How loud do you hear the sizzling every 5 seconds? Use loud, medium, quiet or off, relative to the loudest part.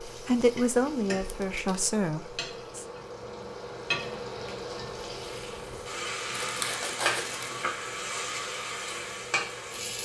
medium, loud.